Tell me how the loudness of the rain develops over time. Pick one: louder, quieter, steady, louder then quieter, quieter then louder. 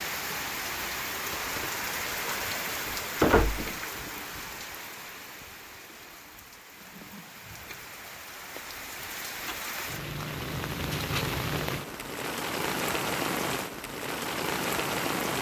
quieter then louder.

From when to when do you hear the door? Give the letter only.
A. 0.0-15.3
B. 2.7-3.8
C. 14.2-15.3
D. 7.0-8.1
B.